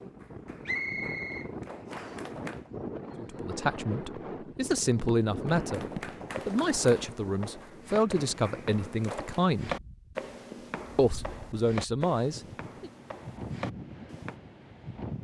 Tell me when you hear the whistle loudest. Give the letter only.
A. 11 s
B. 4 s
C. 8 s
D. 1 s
D.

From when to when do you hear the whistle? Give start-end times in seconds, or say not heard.
0.7-2.2.